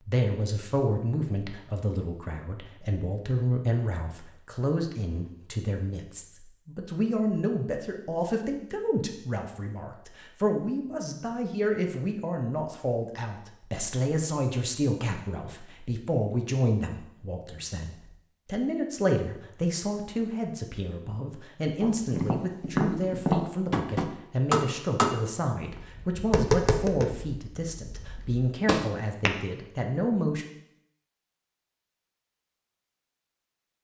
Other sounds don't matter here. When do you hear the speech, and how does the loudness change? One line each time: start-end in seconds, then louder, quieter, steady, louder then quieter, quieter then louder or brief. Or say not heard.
0.1-30.4 steady.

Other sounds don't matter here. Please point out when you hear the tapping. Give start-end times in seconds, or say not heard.
21.8-29.3.